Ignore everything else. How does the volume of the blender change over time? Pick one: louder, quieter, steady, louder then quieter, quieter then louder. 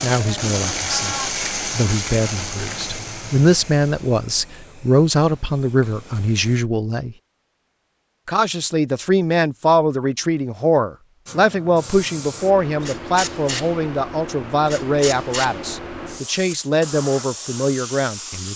quieter.